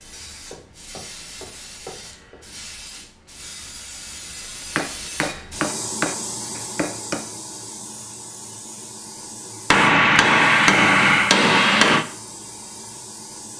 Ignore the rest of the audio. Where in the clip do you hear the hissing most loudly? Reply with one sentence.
The loudest moment of the hissing is at 6 seconds.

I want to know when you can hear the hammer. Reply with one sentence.
You can hear the hammer from 0.3 to 2.4 s, from 4.8 to 7.2 s and from 9.7 to 12.1 s.